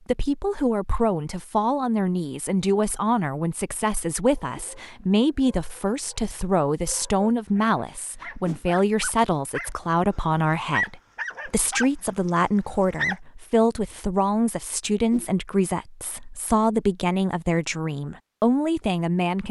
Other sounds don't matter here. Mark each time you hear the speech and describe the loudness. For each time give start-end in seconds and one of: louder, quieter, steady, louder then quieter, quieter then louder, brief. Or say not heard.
0.1-19.4 steady.